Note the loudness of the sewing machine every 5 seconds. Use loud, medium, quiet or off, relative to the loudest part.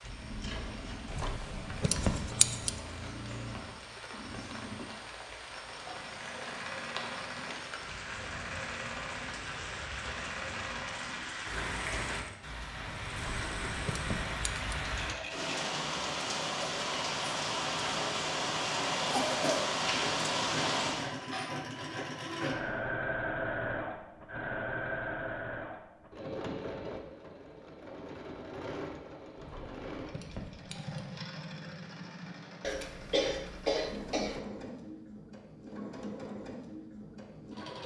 medium, medium, medium, medium, loud, medium, medium, medium.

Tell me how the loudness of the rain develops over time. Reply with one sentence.
The volume of the rain goes up.